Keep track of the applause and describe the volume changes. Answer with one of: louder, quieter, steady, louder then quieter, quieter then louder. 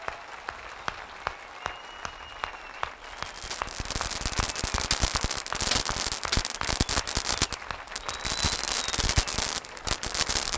steady.